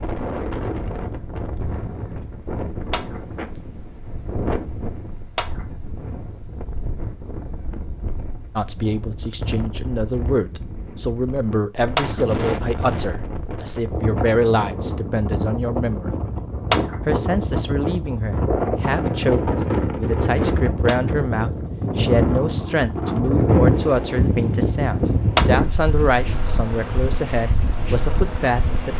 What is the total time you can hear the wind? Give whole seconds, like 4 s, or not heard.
29 s.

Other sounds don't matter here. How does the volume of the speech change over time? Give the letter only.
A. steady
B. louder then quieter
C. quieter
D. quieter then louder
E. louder
A.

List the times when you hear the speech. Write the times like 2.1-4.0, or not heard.
8.6-16.1, 17.1-28.9.